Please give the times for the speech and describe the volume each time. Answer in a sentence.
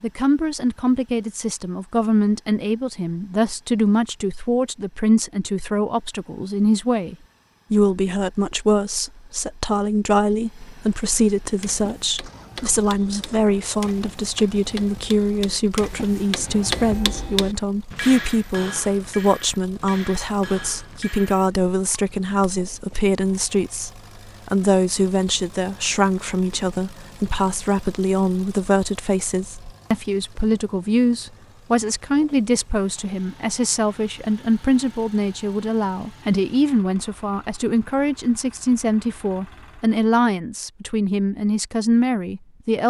You can hear the speech from 0.0 to 42.8 s, at a steady volume.